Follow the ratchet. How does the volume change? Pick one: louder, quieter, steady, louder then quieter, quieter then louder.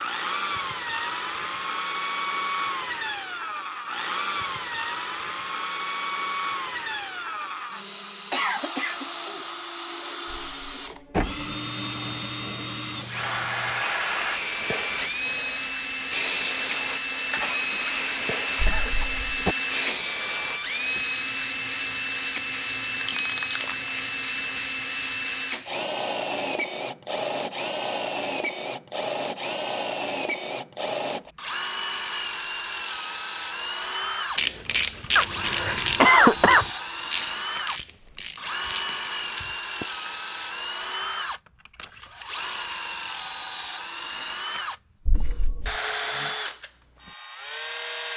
quieter.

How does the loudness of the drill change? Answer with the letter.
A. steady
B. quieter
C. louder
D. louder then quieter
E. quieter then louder
A.